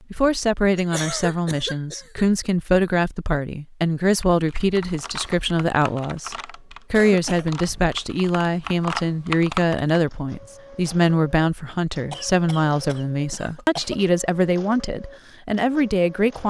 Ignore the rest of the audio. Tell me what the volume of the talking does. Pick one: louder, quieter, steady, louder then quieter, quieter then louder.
steady.